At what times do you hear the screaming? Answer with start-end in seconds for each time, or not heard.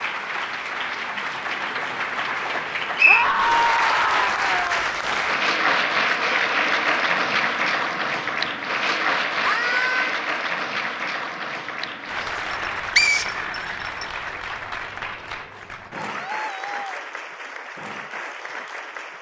3.0-4.8, 9.4-10.2, 15.9-16.9.